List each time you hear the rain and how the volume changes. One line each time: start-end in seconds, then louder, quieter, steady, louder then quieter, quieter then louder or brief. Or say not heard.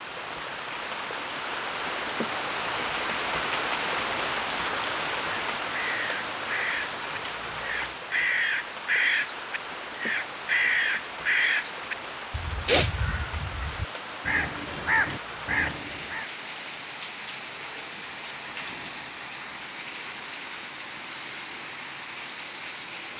0.0-23.1 quieter.